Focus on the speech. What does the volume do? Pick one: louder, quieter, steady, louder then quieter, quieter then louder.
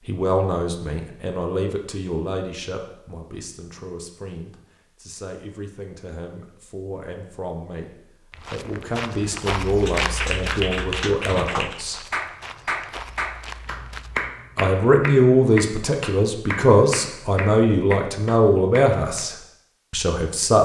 quieter then louder.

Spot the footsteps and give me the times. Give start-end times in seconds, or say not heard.
8.3-14.3.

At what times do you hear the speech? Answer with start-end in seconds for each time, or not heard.
0.1-7.9, 8.5-12.0, 14.6-20.6.